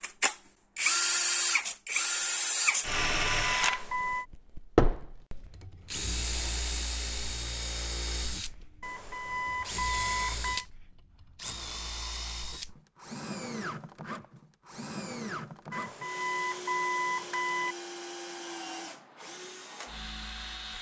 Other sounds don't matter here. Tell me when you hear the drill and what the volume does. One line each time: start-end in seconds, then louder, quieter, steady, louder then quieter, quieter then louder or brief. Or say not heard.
0.0-20.7 quieter.